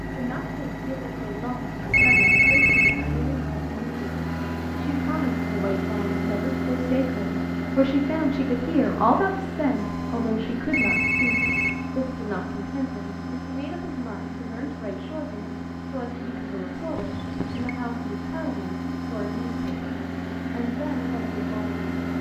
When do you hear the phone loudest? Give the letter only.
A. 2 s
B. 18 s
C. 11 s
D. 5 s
A.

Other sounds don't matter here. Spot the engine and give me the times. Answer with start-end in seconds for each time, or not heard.
0.0-22.1.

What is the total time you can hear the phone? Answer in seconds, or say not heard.
3 s.